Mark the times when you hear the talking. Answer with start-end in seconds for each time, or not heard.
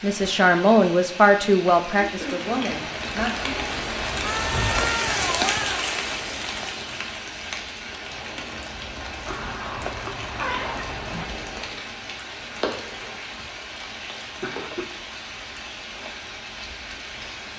0.0-3.5.